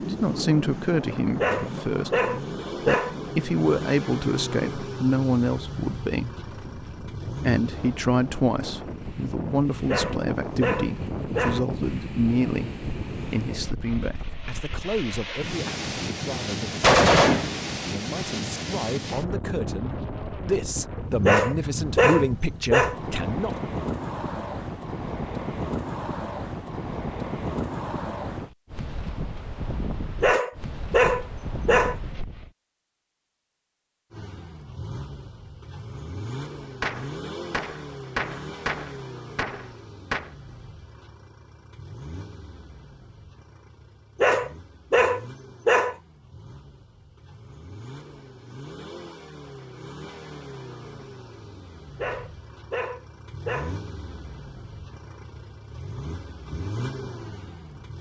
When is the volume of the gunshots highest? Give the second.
17 s.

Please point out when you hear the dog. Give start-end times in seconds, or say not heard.
1.4-3.1, 9.8-11.7, 21.2-22.9, 30.2-31.9, 44.2-46.0, 52.0-53.8.